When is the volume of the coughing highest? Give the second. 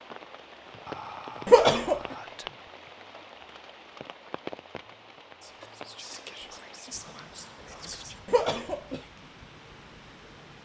2 s.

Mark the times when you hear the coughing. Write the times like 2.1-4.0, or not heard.
1.4-2.0, 8.2-9.0.